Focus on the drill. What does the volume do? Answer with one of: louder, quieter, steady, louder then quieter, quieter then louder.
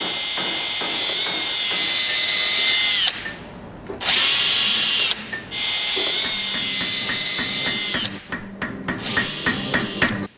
quieter.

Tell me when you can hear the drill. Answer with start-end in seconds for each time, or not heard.
0.0-10.3.